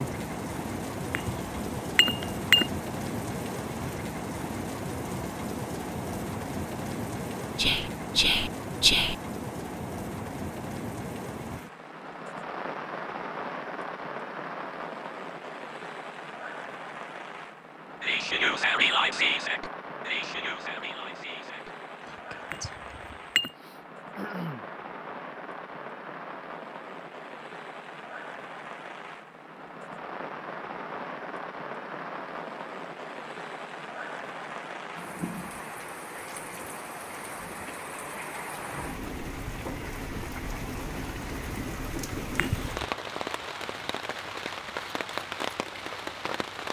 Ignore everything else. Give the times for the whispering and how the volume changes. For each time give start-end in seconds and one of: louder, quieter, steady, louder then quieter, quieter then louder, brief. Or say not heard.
7.5-9.2 brief
18.0-22.9 quieter.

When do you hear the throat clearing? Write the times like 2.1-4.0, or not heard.
23.1-24.6.